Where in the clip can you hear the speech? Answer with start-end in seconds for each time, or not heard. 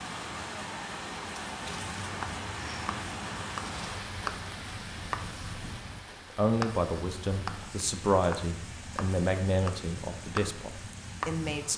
6.3-11.7.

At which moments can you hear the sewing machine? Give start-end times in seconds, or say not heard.
not heard.